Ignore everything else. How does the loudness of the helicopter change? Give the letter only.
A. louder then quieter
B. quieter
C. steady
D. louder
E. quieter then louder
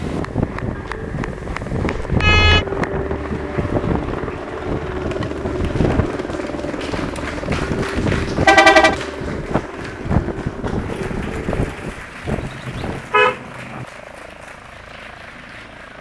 B.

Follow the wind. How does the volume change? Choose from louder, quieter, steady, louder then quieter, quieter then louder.
steady.